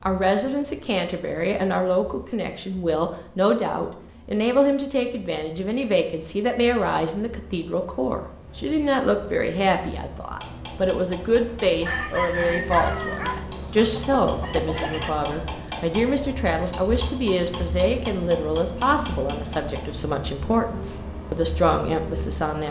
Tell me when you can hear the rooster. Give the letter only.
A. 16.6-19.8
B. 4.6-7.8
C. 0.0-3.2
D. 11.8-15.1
D.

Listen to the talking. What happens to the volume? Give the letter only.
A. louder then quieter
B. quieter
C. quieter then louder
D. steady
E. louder
D.